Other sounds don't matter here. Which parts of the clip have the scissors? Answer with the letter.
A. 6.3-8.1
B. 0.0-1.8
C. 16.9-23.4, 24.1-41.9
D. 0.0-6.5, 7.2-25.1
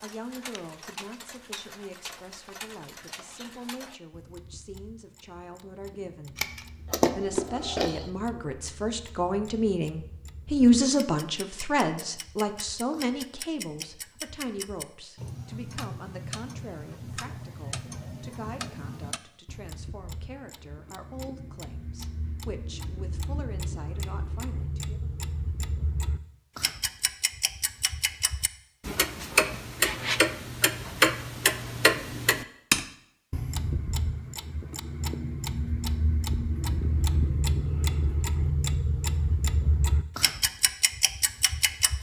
A.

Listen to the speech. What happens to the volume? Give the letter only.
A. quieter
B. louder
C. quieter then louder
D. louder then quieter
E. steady
D.